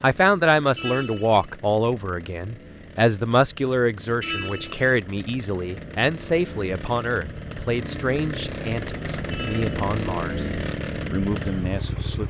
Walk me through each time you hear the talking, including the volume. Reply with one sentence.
You can hear the talking from 0.0 to 10.5 s, getting quieter; and briefly from 11.1 to 12.2 s.